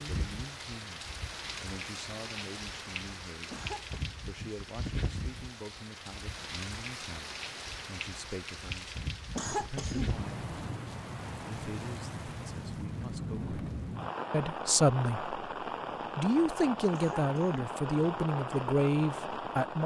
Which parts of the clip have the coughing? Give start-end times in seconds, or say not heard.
3.5-4.2, 9.3-10.8, 16.9-17.8.